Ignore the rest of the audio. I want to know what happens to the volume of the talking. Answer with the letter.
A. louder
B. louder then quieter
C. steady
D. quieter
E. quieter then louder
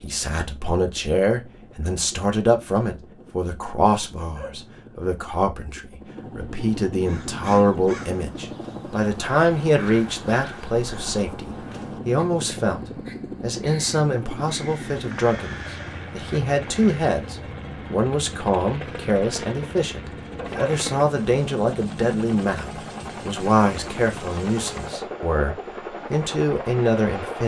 C.